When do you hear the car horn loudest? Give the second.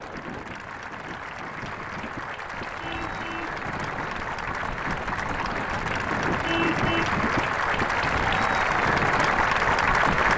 7 s.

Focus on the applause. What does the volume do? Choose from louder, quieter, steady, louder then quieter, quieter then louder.
louder.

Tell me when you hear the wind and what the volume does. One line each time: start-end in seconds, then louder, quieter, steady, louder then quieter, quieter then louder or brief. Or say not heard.
0.0-10.3 louder.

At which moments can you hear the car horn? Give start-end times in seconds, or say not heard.
2.8-3.6, 6.4-7.1.